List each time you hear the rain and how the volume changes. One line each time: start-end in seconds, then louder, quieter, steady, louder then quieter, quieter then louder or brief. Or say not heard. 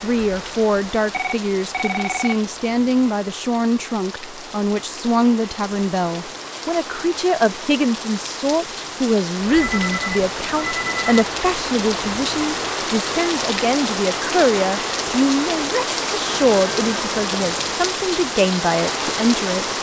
0.0-19.7 louder.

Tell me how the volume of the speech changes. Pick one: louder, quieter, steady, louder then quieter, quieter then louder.
steady.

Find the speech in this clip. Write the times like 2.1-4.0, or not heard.
0.0-19.7.